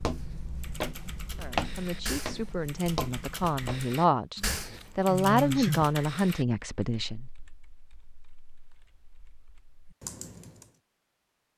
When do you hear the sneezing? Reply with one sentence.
The sneezing can be heard from 5.0 to 5.9 s.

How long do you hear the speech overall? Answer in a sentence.
You can hear the speech for 6 seconds altogether.